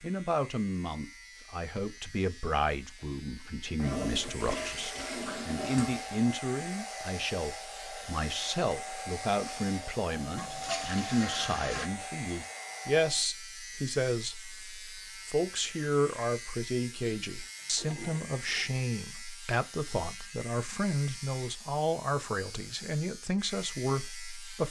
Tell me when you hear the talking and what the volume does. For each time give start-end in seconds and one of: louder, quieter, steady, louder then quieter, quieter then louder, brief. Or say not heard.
0.0-24.6 steady.